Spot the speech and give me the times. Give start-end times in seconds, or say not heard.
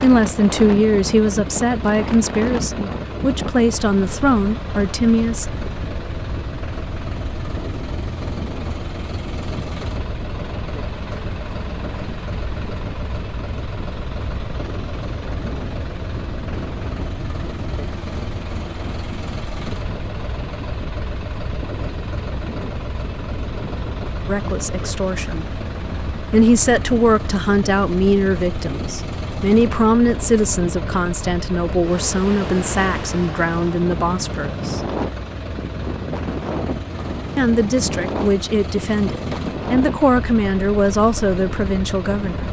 0.0-5.5, 24.2-25.4, 26.3-34.8, 37.4-42.4.